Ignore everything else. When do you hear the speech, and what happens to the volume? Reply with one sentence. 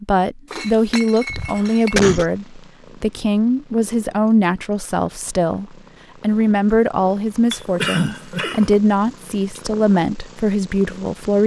The speech can be heard from 0.0 to 11.4 s, at a steady volume.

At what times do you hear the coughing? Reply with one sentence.
You can hear the coughing from 1.3 to 2.2 s and from 7.8 to 8.7 s.